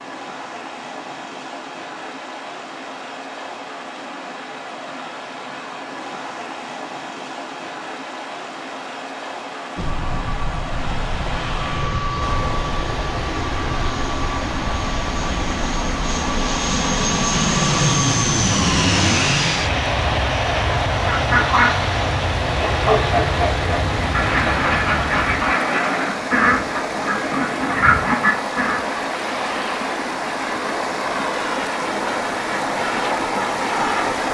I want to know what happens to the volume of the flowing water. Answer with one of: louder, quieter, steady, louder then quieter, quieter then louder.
louder.